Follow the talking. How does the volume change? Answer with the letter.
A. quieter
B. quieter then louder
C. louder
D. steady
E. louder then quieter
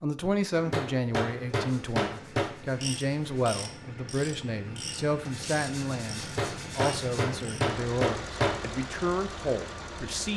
D.